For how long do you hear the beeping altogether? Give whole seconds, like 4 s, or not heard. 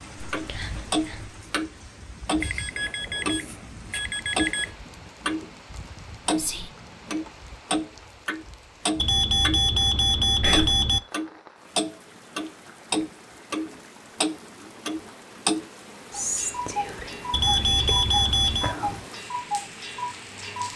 6 s.